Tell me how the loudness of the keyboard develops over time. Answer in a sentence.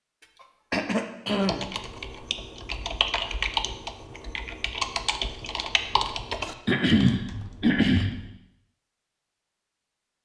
The loudness of the keyboard goes up, then down.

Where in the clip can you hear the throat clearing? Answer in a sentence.
The throat clearing can be heard from 0.4 to 1.6 s and from 6.7 to 8.1 s.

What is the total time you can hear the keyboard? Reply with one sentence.
You can hear the keyboard for 7 seconds altogether.